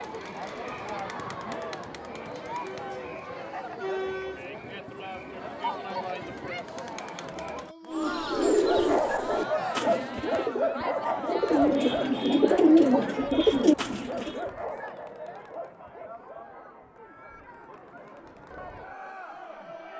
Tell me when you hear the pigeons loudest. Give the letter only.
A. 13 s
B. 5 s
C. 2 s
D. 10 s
A.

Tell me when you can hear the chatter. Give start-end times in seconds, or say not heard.
0.0-19.9.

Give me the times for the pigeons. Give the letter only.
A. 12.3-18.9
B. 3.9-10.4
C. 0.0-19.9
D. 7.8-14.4
D.